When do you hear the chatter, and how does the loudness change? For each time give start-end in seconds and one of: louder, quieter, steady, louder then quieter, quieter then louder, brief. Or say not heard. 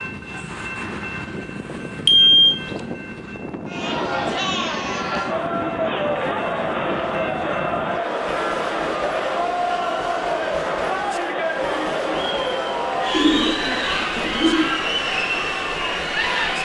3.6-16.6 steady.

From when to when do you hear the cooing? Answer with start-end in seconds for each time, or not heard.
13.1-14.7.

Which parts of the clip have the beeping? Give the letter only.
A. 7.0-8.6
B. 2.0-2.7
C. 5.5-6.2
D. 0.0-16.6
B.